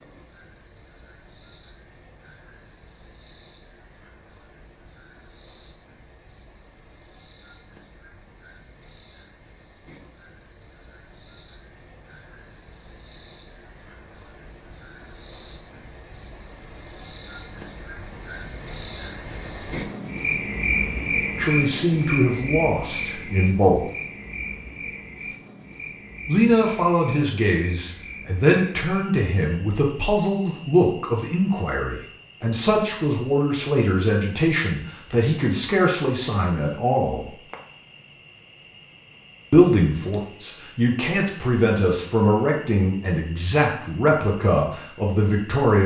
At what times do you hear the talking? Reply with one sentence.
You can hear the talking from 21.4 to 23.9 s, from 26.2 to 37.4 s and from 39.5 to 45.8 s.